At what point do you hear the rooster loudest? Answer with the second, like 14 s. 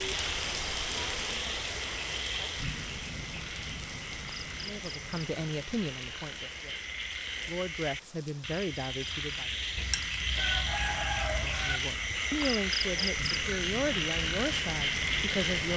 11 s.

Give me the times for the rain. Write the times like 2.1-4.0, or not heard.
0.0-15.7.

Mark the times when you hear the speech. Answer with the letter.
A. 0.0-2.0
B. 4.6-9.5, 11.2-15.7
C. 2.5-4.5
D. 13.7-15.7
B.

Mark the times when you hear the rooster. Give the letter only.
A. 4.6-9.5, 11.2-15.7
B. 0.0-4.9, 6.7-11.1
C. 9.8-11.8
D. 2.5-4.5
C.